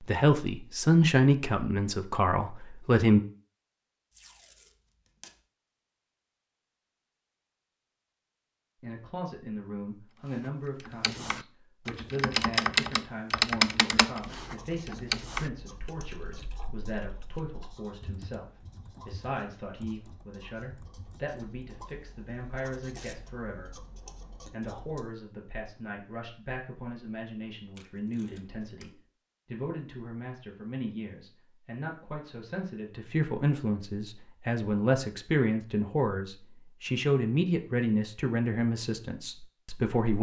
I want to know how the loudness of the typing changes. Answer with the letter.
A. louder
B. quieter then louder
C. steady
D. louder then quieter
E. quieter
E.